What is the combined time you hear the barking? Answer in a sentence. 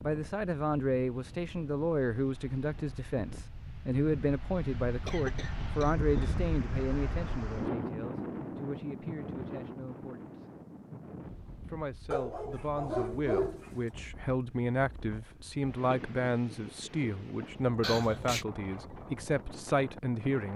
The barking can be heard for 2 seconds in total.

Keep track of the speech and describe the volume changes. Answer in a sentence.
The loudness of the speech goes down, then up.